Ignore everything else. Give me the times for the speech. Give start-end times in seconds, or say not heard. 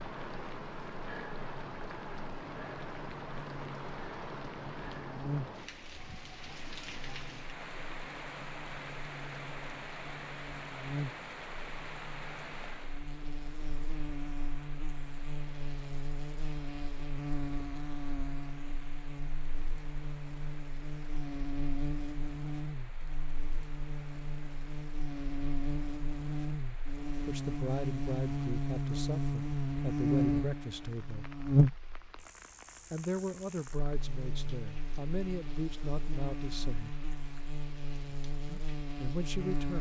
27.2-31.4, 32.9-37.0, 38.5-39.7.